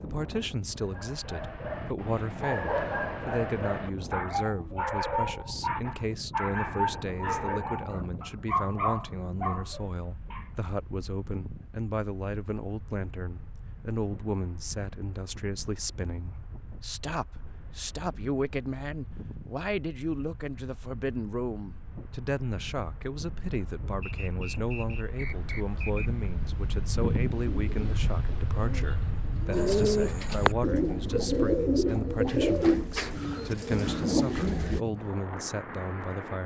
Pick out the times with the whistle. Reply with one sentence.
You can hear the whistle from 24.0 to 26.1 s.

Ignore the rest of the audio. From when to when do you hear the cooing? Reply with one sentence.
The cooing can be heard from 27.2 to 34.8 s.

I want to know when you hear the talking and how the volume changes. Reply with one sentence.
The talking can be heard from 0.0 to 36.4 s, at a steady volume.